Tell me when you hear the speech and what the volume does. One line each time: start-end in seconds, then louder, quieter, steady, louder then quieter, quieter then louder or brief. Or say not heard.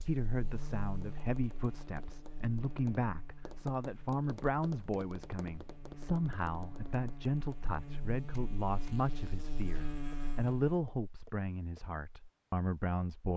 0.0-13.3 steady.